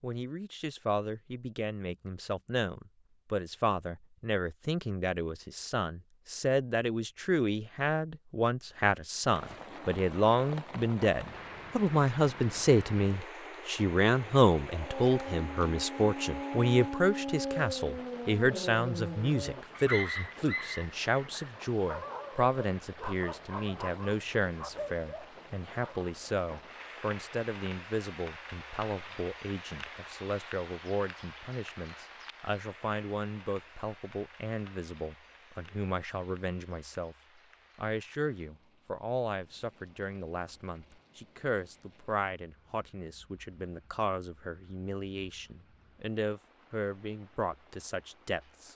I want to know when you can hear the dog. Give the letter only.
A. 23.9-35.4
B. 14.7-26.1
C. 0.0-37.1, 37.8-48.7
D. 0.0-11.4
B.